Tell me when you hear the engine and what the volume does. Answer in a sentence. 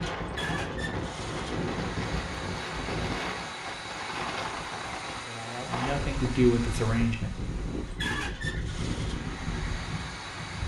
You can hear the engine from 0.0 to 10.6 s, at a steady volume.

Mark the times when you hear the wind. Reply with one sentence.
You can hear the wind from 0.0 to 10.6 s.